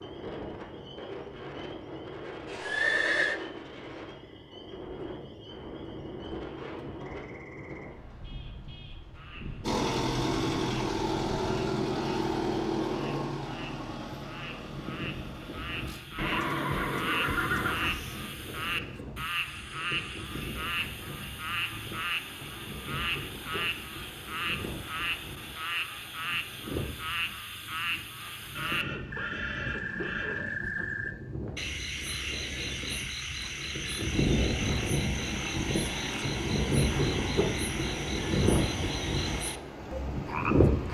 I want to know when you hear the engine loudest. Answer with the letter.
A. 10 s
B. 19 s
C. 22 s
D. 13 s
A.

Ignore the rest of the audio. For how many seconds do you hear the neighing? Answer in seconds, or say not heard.
5 s.